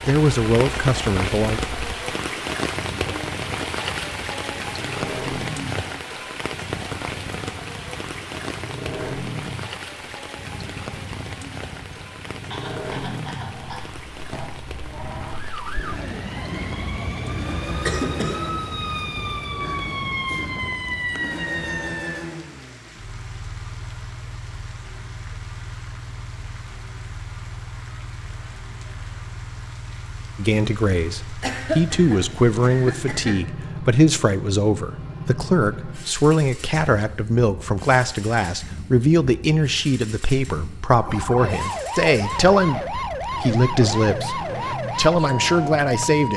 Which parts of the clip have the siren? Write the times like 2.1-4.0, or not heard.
15.3-22.3, 40.9-46.3.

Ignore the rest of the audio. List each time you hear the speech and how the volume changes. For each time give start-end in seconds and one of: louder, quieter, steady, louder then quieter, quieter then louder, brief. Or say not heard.
0.1-1.6 brief
30.4-46.3 steady.